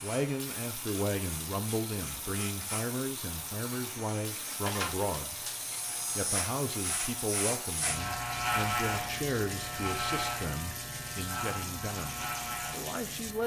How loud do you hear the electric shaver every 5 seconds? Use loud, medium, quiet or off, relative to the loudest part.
medium, loud, loud.